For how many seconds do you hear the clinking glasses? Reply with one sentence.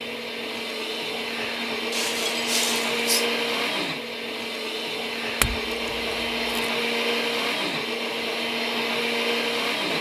You can hear the clinking glasses for 3 seconds altogether.